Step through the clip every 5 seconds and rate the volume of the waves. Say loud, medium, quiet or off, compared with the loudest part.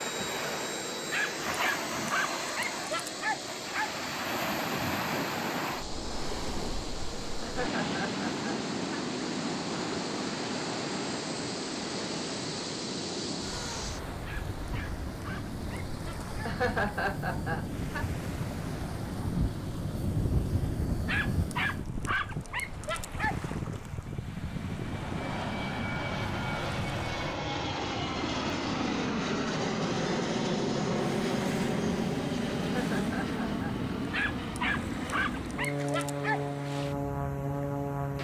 loud, loud, loud, medium, quiet, medium, medium, medium.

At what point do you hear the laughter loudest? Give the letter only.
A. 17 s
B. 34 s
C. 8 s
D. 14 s
A.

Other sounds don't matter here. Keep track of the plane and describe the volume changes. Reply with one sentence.
The volume of the plane goes up.